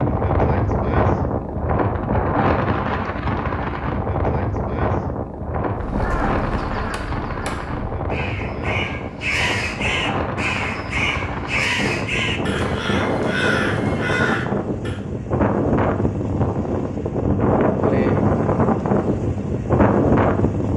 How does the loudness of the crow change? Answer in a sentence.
The loudness of the crow goes up.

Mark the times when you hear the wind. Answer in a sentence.
You can hear the wind from 0.0 to 20.7 s.